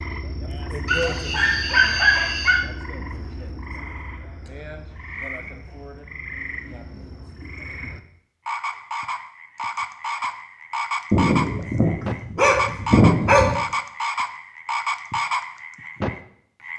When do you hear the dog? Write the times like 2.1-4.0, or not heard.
0.8-2.6, 11.1-13.6.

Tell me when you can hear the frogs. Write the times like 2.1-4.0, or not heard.
0.0-16.7.